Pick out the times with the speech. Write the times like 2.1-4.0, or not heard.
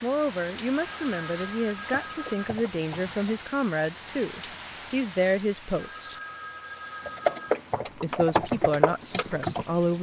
0.0-6.2, 8.0-9.9.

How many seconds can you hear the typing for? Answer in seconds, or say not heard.
4 s.